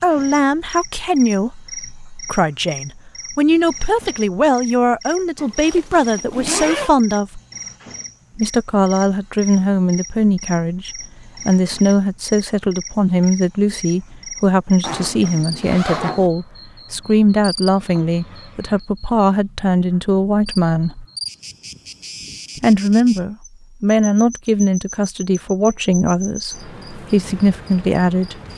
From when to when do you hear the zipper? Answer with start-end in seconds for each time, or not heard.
5.3-7.0, 14.8-16.3.